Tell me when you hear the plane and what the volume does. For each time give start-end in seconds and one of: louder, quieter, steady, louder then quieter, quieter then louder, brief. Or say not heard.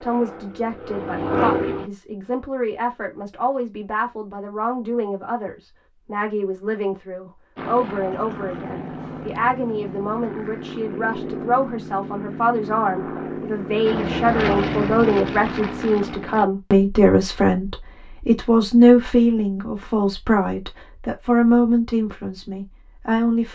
0.0-1.9 brief
7.5-16.4 louder.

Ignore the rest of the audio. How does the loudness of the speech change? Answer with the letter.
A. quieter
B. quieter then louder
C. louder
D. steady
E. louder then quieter
C.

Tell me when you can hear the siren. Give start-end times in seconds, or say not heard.
not heard.